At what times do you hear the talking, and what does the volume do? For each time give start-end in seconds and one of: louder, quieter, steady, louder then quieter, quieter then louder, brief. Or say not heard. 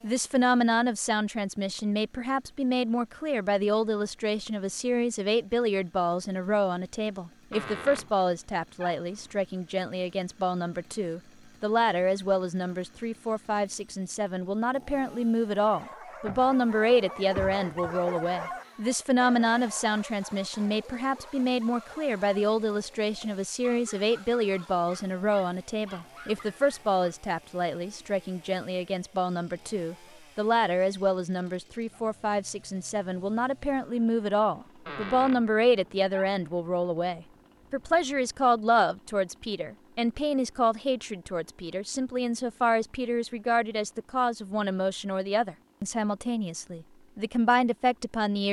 0.0-48.4 steady.